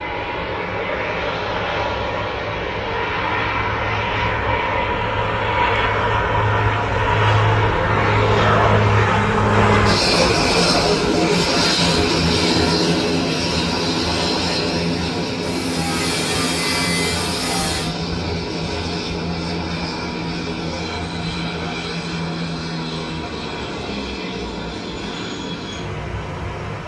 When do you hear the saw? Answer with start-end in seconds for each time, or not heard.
15.4-17.9.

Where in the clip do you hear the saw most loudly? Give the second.
17 s.